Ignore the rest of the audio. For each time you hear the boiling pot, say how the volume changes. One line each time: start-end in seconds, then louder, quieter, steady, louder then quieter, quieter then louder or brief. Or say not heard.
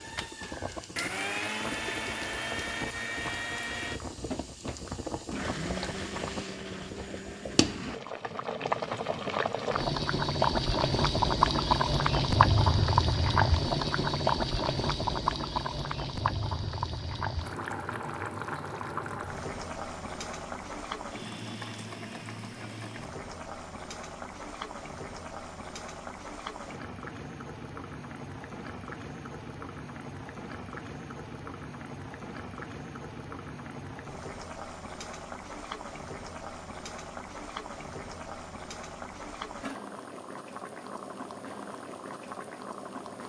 0.0-43.2 louder then quieter.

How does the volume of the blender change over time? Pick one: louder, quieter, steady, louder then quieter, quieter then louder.
quieter.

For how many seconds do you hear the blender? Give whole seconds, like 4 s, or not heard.
8 s.